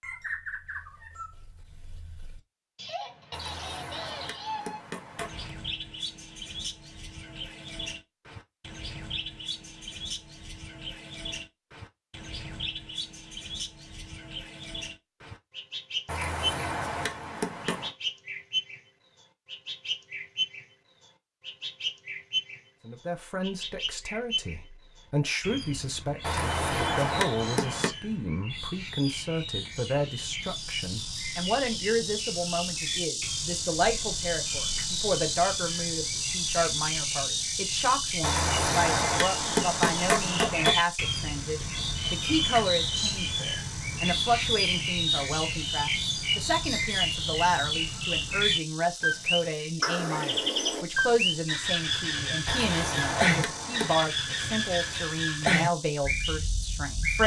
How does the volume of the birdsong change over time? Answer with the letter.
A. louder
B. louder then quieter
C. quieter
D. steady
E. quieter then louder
A.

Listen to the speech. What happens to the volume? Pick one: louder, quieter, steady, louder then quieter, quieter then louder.
steady.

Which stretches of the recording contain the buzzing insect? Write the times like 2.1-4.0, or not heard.
30.4-57.2.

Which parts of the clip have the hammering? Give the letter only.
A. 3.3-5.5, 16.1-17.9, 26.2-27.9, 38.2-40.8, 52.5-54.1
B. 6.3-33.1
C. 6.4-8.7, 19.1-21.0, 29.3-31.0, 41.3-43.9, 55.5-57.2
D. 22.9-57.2
A.